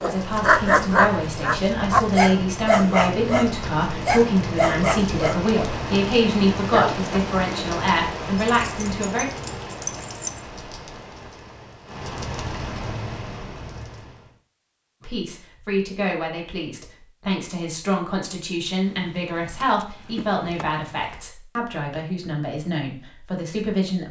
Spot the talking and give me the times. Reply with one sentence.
The talking can be heard from 0.0 to 9.2 s and from 15.0 to 24.0 s.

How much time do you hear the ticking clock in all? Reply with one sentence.
The ticking clock can't be heard in this clip.